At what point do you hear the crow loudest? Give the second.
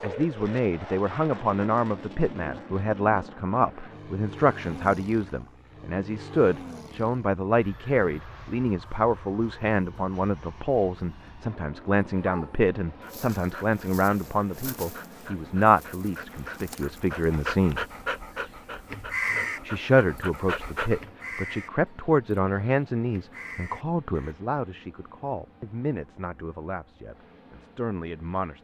19 s.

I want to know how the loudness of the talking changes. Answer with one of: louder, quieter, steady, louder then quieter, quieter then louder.
quieter.